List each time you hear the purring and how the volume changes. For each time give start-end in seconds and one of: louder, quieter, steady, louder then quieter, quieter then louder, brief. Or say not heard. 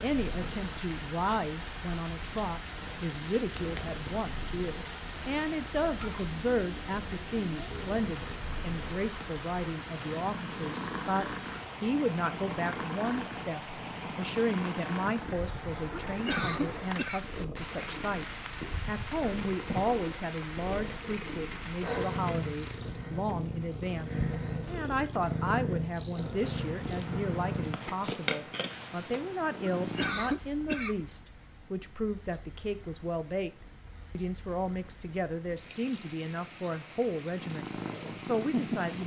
0.0-30.6 louder
37.2-39.0 brief.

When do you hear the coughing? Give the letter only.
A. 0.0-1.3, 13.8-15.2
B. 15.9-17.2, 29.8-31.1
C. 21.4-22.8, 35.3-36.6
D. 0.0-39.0
B.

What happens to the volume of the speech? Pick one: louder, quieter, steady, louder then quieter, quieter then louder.
steady.